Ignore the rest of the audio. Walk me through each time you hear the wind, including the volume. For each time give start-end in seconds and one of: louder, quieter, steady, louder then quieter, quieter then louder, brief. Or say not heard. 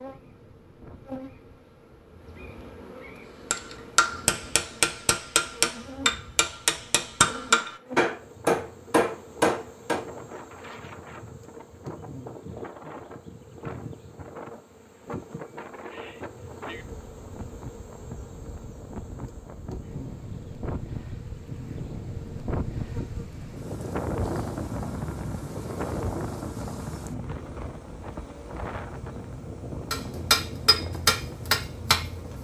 0.0-32.3 louder.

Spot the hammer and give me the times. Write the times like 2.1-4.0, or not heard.
3.5-10.1, 29.9-32.3.